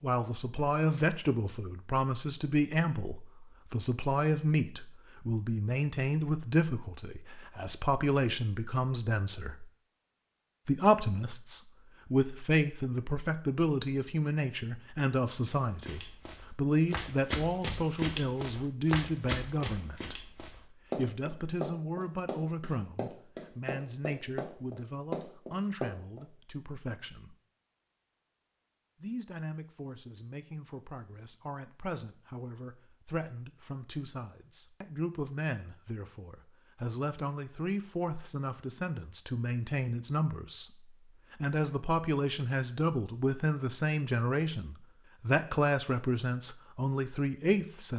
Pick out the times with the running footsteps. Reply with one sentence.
You can hear the running footsteps from 15.7 to 26.2 s.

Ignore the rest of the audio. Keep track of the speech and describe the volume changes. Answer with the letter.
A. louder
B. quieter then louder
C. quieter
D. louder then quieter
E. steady
B.